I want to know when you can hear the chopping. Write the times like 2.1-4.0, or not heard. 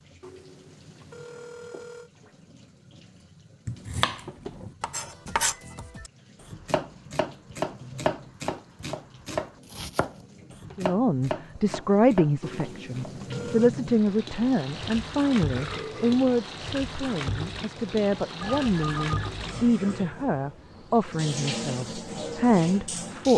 3.6-13.2.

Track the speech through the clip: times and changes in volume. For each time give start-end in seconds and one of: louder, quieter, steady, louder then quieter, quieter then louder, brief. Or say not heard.
10.8-23.3 steady.